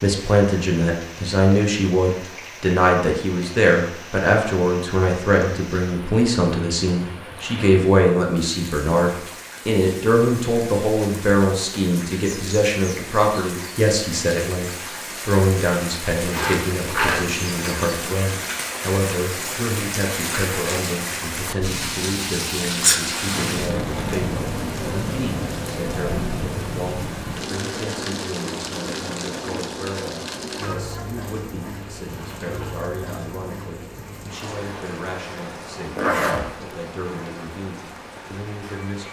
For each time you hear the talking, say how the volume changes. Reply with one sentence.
You can hear the talking from 0.0 to 39.0 s, getting quieter.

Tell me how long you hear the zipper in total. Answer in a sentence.
The zipper can be heard for 2 seconds in total.